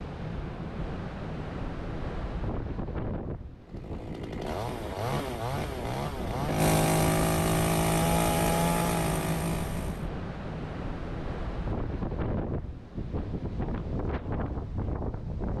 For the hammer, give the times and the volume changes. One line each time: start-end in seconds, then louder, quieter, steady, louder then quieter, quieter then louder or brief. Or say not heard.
not heard.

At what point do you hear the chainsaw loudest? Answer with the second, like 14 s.
7 s.